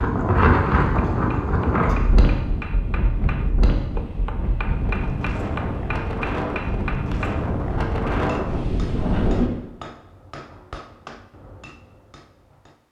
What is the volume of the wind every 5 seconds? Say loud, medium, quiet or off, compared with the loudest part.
loud, loud, off.